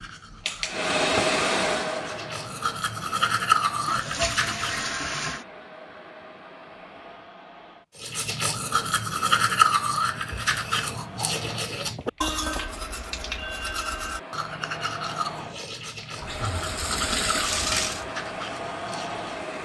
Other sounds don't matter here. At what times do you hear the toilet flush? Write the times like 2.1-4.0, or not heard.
3.9-5.5, 16.1-18.1.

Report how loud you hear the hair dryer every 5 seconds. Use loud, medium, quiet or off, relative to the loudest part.
loud, quiet, quiet, medium.